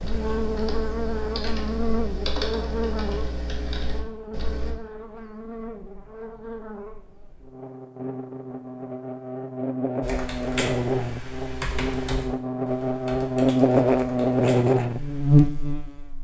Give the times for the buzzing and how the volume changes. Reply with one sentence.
You can hear the buzzing from 0.0 to 16.1 s, getting quieter then louder.